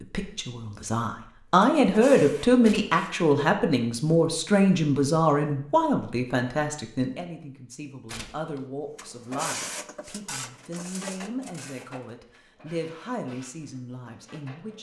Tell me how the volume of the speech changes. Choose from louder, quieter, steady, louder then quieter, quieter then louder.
quieter.